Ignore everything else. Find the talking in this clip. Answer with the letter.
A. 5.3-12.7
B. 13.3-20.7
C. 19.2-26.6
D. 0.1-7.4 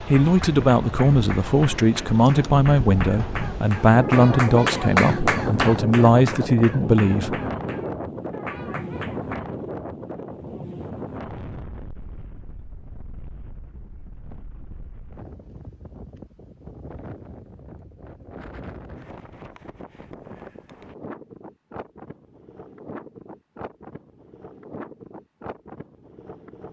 D.